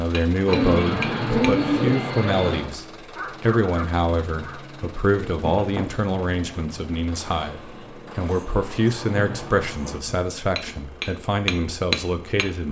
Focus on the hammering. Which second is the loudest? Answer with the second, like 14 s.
12 s.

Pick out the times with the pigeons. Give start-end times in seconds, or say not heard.
0.5-2.7, 5.3-6.6, 9.0-10.4.